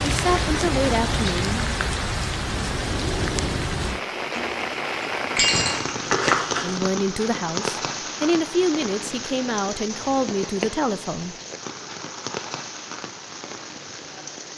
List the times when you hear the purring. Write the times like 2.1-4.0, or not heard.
not heard.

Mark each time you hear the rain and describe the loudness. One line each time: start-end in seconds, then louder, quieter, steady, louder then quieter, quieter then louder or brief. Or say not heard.
0.0-14.5 quieter.